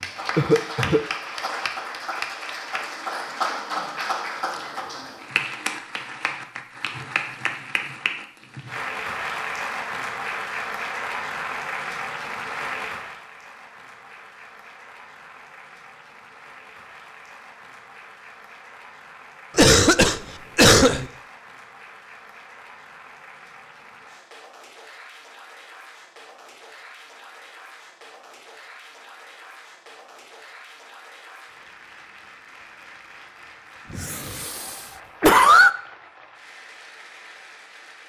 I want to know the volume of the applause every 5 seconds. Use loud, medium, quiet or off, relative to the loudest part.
loud, loud, loud, quiet, quiet, quiet, quiet, quiet.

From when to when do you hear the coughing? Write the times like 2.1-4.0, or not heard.
0.3-1.0, 19.6-21.1, 33.9-35.7.